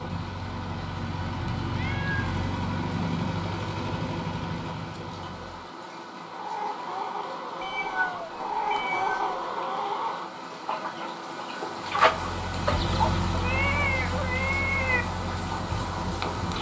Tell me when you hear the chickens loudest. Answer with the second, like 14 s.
12 s.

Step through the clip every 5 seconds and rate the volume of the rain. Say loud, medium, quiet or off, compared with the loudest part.
medium, medium, loud, loud.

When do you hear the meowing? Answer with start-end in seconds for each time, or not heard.
1.4-2.4, 7.6-9.3, 13.4-15.1.